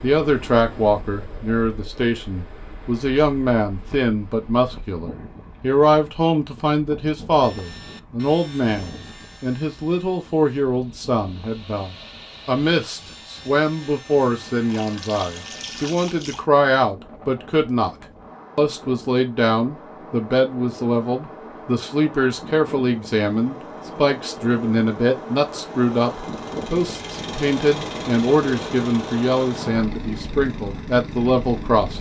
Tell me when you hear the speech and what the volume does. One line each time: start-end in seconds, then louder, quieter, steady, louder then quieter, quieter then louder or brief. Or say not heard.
0.0-17.9 steady
18.6-31.9 steady.